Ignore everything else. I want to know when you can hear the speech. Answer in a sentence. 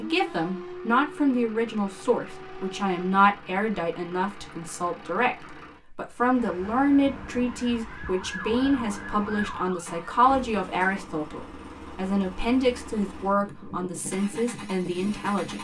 You can hear the speech from 0.0 to 15.6 s.